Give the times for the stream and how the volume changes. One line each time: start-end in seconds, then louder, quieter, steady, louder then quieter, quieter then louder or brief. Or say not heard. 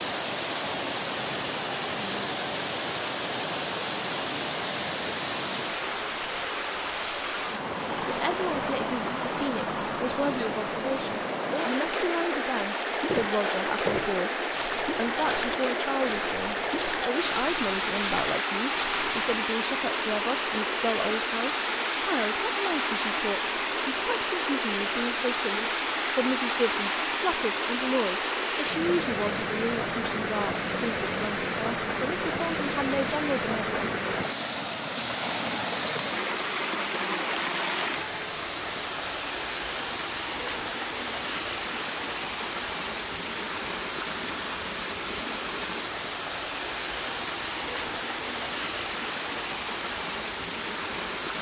0.0-51.3 steady.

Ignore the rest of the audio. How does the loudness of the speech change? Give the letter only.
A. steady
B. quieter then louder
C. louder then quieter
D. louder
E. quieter
A.